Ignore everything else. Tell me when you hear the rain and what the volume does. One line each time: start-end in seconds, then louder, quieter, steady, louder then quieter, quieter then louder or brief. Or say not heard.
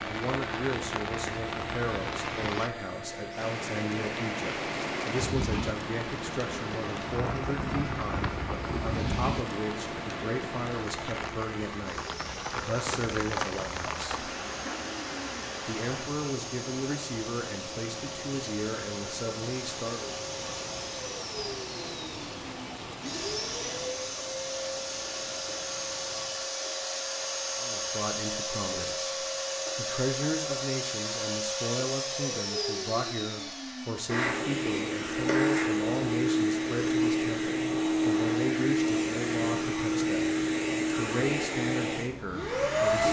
0.0-26.5 quieter.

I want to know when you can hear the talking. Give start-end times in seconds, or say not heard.
0.0-14.2, 15.7-20.1, 27.6-29.1, 29.8-43.0.